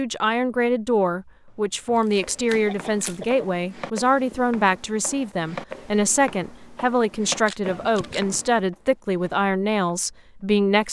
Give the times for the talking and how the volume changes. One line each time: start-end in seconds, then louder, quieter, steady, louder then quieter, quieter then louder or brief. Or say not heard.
0.0-10.8 steady.